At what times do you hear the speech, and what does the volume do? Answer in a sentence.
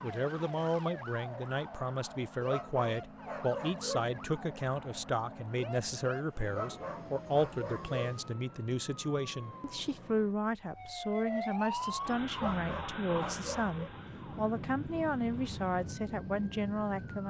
You can hear the speech from 0.0 to 17.2 s, at a steady volume.